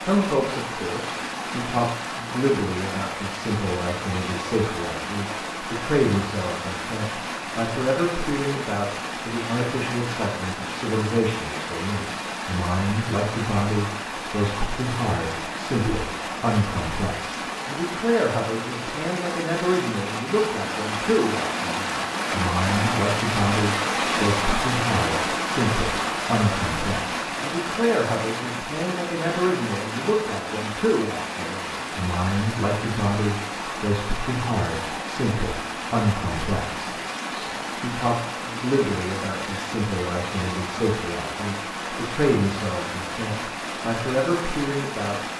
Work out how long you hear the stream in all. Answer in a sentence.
The stream can be heard for 45 seconds in total.